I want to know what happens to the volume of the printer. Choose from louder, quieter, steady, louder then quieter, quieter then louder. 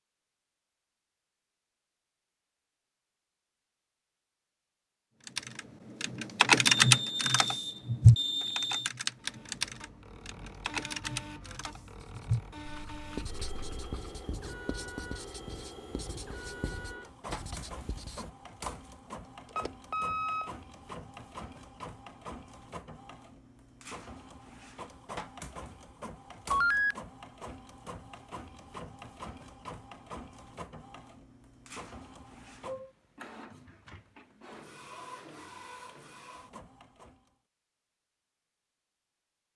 steady.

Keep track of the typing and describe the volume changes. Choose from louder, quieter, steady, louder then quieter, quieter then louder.
quieter.